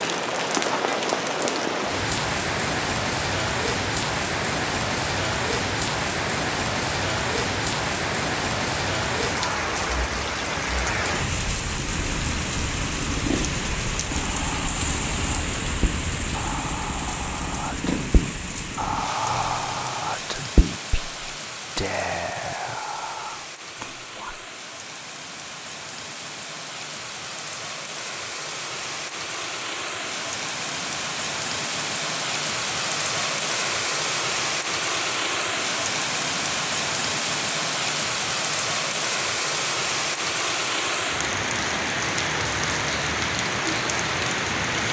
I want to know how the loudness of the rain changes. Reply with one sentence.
The volume of the rain goes down, then up.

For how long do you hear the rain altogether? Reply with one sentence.
The rain can be heard for 45 seconds in total.